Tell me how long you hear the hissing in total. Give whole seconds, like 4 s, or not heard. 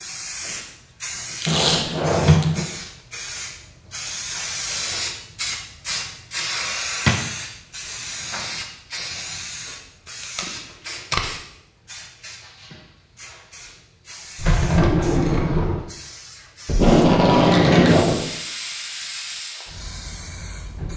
21 s.